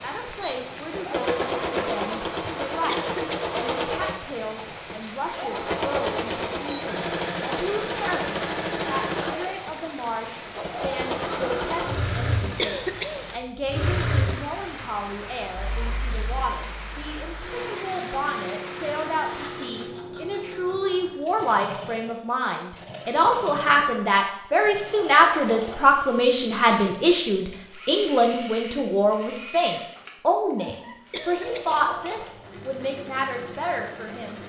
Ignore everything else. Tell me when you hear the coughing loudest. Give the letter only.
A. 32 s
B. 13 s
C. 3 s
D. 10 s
B.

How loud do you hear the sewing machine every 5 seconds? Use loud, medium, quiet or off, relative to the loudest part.
loud, loud, loud, medium, medium, medium, medium.